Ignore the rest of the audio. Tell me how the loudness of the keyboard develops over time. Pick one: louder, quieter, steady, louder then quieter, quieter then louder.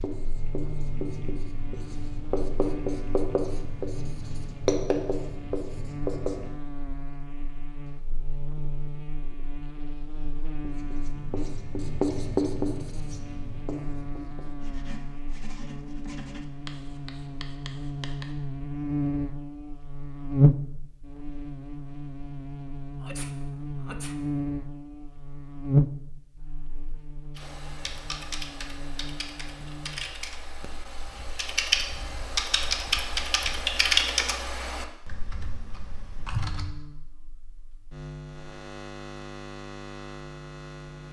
louder then quieter.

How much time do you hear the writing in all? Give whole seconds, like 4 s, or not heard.
14 s.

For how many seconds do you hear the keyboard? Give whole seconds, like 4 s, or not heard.
9 s.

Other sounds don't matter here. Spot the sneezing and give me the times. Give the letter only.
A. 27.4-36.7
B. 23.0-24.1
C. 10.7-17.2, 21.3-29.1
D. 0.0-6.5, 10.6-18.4
B.